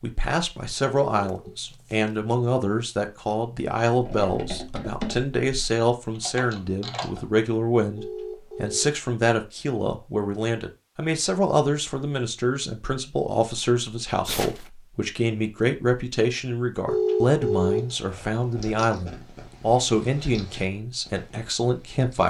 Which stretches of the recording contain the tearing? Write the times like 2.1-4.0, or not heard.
1.2-2.1, 14.2-14.7.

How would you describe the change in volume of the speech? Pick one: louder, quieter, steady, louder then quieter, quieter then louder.
steady.